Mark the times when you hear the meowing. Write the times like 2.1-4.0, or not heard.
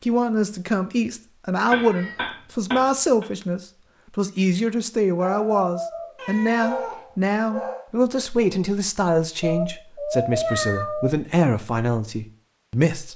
1.6-2.3, 6.2-7.0, 9.4-11.2.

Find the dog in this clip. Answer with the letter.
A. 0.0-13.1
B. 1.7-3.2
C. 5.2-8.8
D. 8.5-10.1
C.